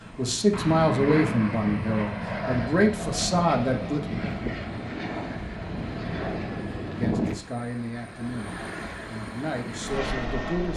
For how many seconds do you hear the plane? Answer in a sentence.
You can hear the plane for 11 seconds altogether.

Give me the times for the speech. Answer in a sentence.
The speech can be heard from 0.1 to 4.1 s and from 6.9 to 10.7 s.